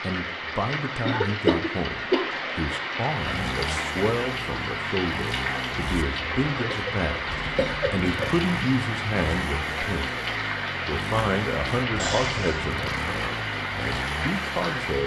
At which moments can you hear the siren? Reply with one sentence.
The siren can't be heard in this clip.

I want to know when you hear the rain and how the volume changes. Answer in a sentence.
You can hear the rain from 0.0 to 15.0 s, at a steady volume.